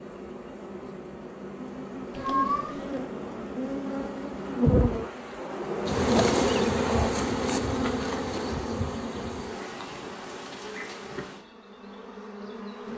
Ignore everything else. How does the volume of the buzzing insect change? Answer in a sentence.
The volume of the buzzing insect goes up, then down.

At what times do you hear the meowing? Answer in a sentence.
You can hear the meowing from 2.1 to 2.9 s.